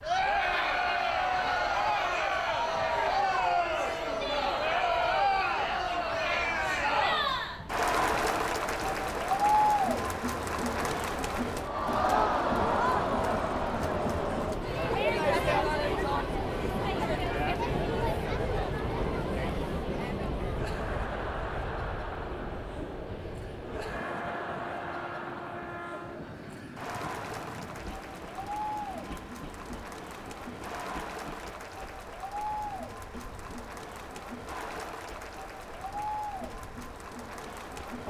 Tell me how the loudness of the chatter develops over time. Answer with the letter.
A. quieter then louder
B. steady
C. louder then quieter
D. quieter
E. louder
D.